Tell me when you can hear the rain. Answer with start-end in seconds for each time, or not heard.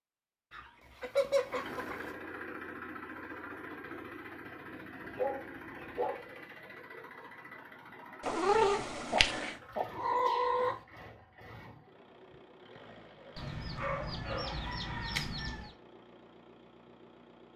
not heard.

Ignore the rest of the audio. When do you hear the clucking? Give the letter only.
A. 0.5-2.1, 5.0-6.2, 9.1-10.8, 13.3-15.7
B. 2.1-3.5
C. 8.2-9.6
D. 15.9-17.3
A.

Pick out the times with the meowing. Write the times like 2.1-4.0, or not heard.
8.2-9.6.